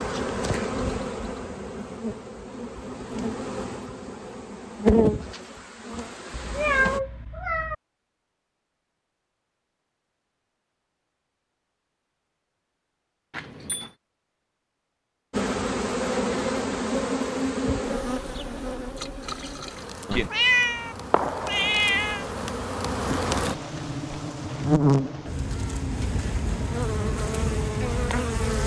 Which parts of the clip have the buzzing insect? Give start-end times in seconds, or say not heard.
0.0-7.0, 15.3-28.6.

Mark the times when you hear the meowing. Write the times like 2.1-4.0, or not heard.
6.3-7.8, 13.3-13.9, 20.1-22.2.